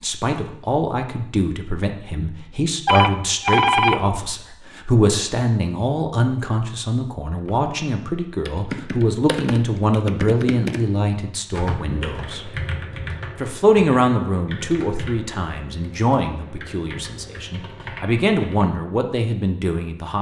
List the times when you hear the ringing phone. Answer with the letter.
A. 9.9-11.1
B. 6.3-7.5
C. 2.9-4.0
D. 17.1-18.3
C.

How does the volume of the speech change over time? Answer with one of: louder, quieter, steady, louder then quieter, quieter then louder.
steady.